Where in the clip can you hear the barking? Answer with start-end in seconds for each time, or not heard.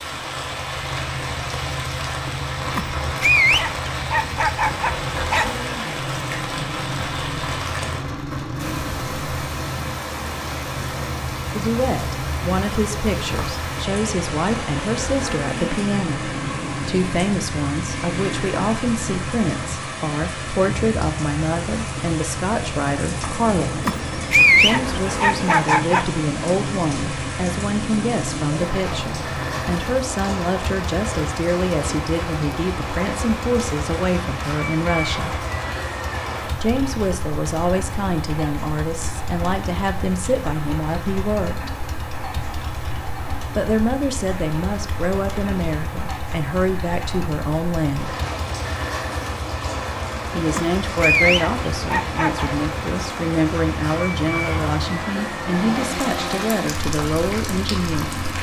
2.8-5.5, 23.9-26.1, 50.5-52.5.